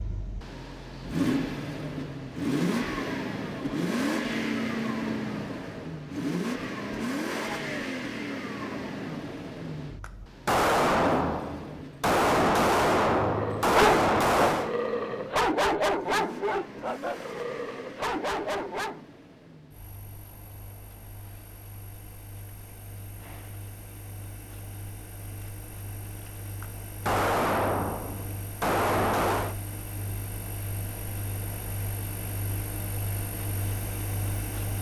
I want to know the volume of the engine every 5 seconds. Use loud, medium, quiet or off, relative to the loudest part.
loud, loud, medium, quiet, quiet, quiet, medium.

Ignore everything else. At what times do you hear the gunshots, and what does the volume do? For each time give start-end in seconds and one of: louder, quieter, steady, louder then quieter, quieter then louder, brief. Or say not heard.
10.0-14.8 quieter then louder
26.6-29.6 brief.